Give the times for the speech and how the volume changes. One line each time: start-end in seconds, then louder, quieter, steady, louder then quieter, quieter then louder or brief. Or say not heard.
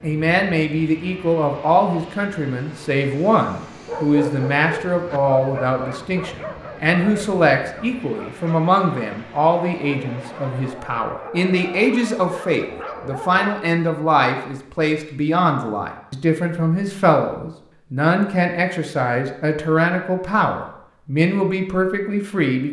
0.0-22.6 steady.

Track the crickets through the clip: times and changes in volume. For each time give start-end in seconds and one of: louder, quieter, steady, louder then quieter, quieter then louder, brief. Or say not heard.
not heard.